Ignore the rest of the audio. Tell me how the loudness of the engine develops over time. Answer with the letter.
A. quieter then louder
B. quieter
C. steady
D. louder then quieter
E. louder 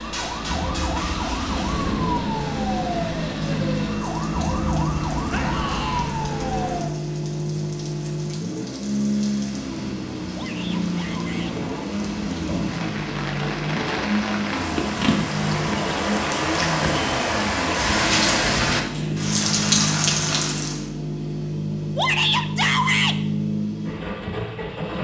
C.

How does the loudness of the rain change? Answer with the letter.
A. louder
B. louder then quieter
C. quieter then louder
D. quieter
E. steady
A.